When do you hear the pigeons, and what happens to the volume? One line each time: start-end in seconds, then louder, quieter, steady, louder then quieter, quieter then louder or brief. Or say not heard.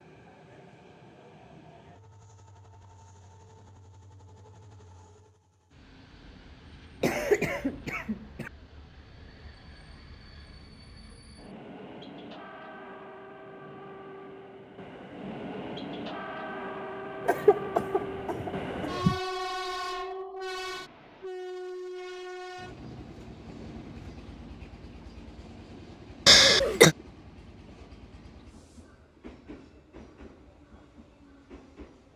not heard.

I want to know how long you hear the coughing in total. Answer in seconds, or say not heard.
4 s.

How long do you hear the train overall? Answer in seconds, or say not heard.
32 s.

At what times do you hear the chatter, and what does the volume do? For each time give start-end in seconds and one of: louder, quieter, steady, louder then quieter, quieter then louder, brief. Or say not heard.
not heard.